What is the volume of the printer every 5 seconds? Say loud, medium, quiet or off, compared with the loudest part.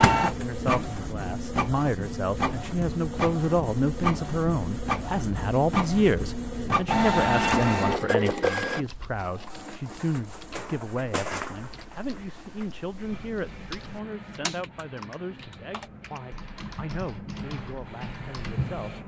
loud, loud, quiet, quiet.